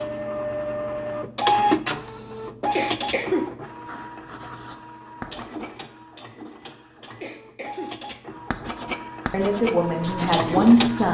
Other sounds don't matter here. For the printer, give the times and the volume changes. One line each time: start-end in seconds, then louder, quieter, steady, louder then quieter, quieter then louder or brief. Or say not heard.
0.0-11.0 quieter then louder.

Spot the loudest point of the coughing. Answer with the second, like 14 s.
3 s.